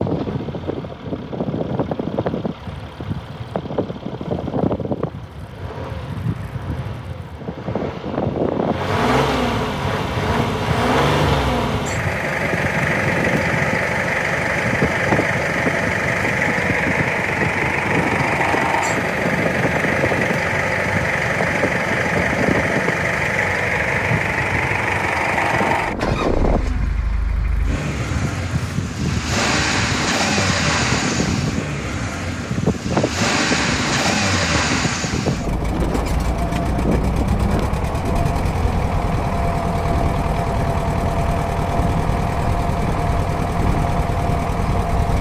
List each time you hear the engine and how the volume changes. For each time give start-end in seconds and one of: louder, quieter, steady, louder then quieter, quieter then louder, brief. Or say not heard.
0.0-45.1 louder.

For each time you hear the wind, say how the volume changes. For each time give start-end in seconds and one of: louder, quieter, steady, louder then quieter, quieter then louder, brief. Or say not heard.
0.0-45.0 steady.